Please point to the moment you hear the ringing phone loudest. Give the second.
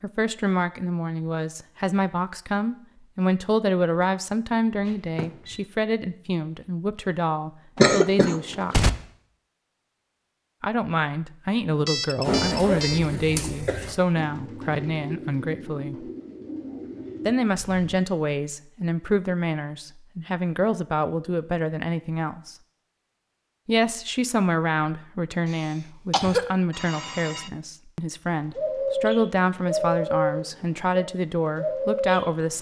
12 s.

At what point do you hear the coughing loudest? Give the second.
8 s.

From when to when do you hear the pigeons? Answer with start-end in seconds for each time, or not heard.
12.2-18.0, 28.6-32.5.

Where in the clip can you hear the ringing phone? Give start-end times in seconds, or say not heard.
4.8-5.7, 11.8-13.1, 26.7-27.5.